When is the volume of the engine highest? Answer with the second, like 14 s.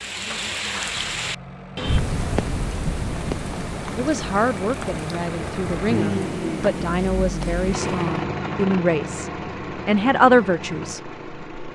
6 s.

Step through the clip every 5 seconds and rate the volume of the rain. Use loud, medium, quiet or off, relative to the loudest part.
loud, medium, off.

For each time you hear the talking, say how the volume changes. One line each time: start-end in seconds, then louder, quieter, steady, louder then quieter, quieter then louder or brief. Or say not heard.
3.9-11.7 louder.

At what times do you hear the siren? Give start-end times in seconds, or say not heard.
not heard.